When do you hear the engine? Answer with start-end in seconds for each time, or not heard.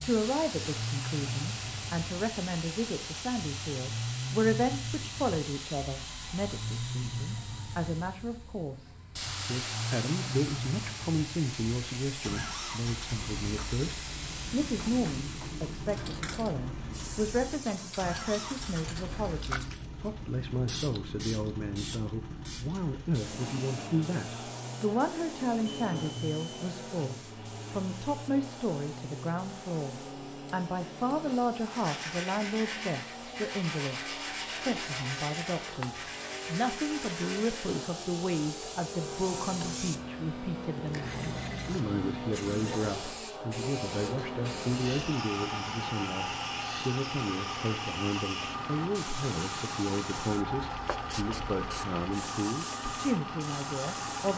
0.0-54.3.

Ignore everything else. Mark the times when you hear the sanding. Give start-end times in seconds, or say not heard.
31.6-37.9.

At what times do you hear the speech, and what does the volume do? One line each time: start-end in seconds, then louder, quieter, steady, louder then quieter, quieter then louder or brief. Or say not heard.
0.0-54.3 steady.